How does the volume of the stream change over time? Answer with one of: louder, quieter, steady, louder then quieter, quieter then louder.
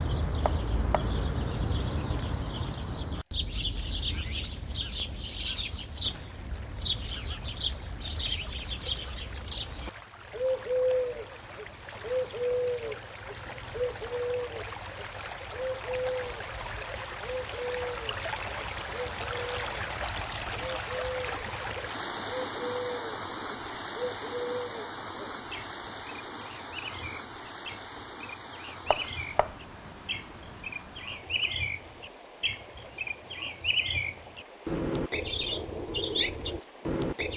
louder then quieter.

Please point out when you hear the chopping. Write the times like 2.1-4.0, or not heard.
0.5-1.1, 28.9-29.6.